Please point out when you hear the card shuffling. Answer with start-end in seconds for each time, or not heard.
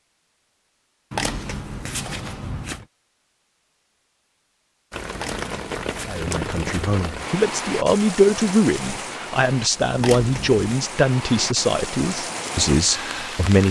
1.1-2.9, 5.2-7.0, 9.9-10.7.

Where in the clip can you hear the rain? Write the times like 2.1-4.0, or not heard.
4.9-13.6.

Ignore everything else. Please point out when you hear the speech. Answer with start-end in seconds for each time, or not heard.
6.0-13.6.